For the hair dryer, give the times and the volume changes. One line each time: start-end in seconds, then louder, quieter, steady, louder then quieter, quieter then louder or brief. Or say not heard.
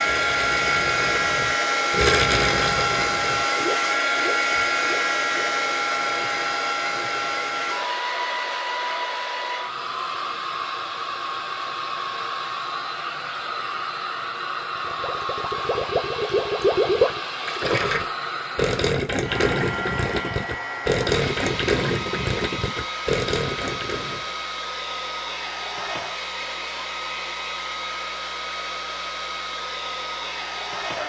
0.0-31.0 quieter.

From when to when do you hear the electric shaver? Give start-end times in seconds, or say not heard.
not heard.